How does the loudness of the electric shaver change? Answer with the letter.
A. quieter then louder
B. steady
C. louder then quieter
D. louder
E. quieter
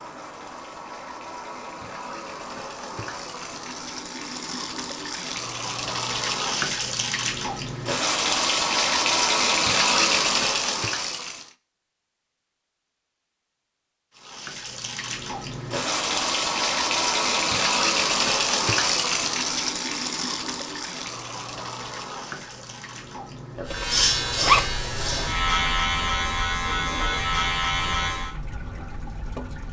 B.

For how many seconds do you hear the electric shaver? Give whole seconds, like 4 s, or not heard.
5 s.